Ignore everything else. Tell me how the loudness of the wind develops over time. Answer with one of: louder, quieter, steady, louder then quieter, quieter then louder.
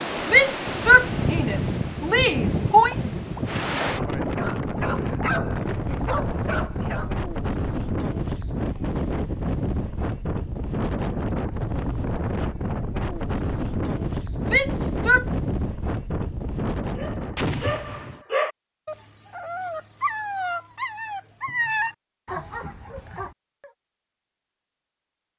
steady.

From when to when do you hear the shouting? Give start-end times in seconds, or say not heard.
0.2-3.0, 14.4-15.2.